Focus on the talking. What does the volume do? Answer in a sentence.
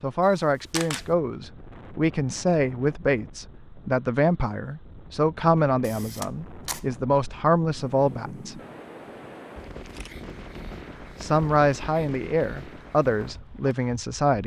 The volume of the talking stays about the same.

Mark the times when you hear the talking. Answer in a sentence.
The talking can be heard from 0.0 to 8.6 s and from 11.2 to 14.4 s.